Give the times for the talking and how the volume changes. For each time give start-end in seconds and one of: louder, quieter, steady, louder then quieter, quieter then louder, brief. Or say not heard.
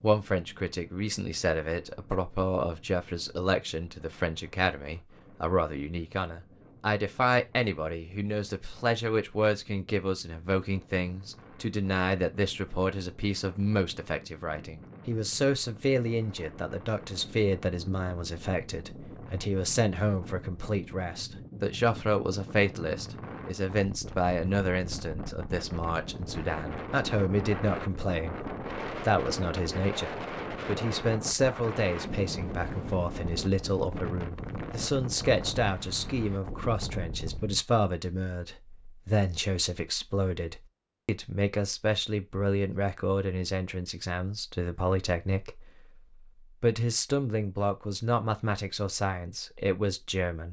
0.0-50.4 steady.